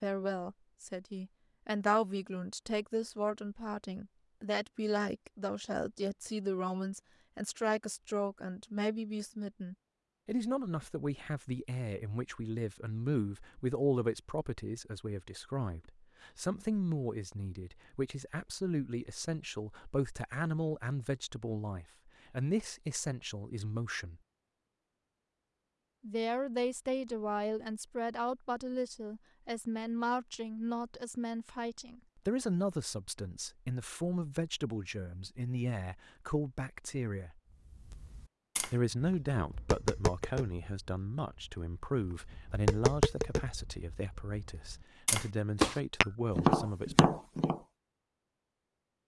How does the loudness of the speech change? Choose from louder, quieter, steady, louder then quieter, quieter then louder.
steady.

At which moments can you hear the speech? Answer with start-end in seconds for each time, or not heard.
0.0-24.2, 26.0-37.4, 38.7-47.0.